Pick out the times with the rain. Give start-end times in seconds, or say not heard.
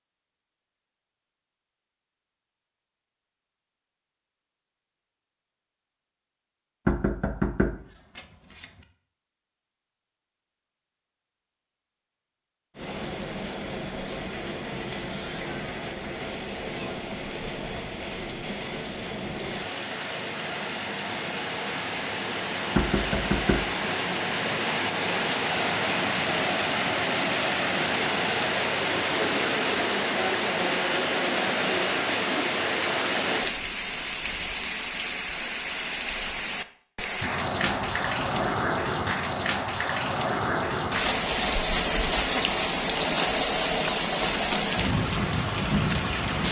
12.8-46.4.